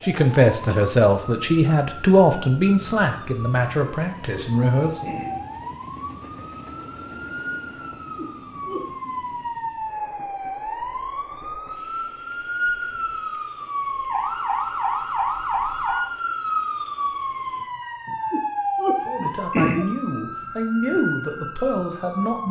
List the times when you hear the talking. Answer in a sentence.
You can hear the talking from 0.0 to 5.2 s and from 19.1 to 22.4 s.